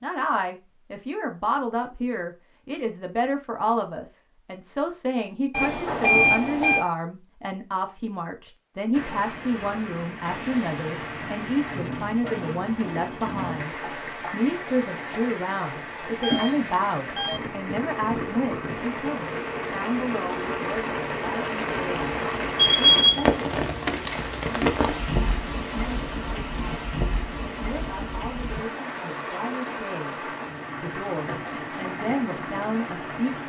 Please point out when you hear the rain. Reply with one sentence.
You can hear the rain from 8.9 to 33.4 s.